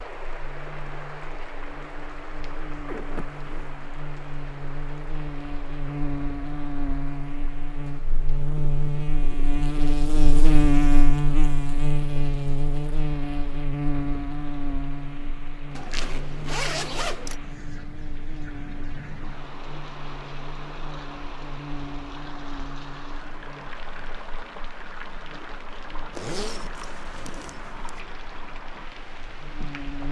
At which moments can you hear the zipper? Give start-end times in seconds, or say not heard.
2.9-3.8, 15.8-17.4, 26.1-28.0.